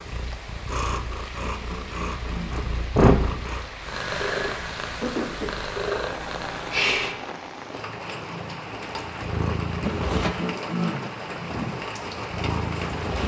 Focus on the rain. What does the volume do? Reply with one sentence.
The volume of the rain goes up.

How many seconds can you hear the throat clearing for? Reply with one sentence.
The throat clearing can be heard for 3 seconds in total.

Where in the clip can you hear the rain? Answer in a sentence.
The rain can be heard from 0.0 to 13.2 s.